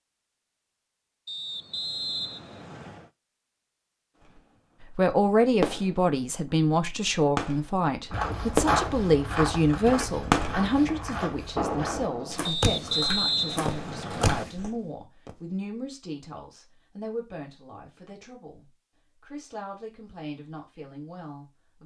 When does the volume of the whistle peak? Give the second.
13 s.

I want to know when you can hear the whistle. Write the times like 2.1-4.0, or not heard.
1.2-3.1, 12.4-14.4.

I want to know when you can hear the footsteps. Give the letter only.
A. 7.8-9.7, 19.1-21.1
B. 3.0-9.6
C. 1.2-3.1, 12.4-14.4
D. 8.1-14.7
D.